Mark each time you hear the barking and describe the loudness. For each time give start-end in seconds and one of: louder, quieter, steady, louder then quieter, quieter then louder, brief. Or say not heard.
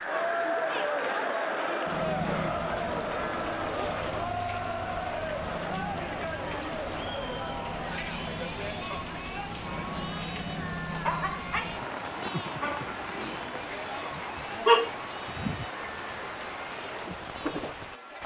10.8-16.0 quieter then louder.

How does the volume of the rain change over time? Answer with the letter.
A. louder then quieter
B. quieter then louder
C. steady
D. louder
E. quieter
C.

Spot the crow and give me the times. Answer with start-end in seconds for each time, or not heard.
not heard.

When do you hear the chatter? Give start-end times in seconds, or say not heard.
0.0-18.2.